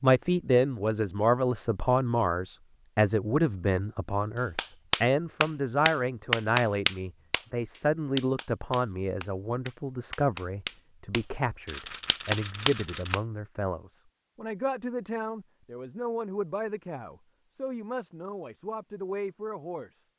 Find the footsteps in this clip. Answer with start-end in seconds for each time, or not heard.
not heard.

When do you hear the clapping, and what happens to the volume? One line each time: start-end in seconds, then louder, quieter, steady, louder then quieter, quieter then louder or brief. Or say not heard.
4.5-13.2 quieter then louder.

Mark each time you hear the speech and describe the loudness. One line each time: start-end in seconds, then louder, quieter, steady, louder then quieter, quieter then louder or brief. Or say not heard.
0.0-20.0 quieter.